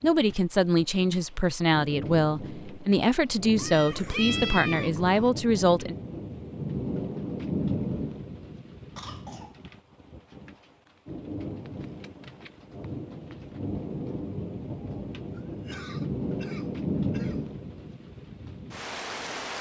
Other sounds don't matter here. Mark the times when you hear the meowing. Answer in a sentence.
You can hear the meowing from 3.5 to 5.1 s and from 11.7 to 12.7 s.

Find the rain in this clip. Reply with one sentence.
The rain can be heard from 0.0 to 19.5 s.